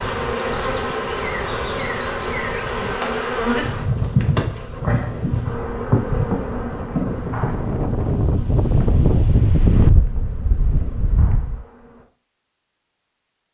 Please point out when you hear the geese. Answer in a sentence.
You can't hear the geese here.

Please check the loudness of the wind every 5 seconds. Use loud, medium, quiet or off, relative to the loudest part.
quiet, loud, medium.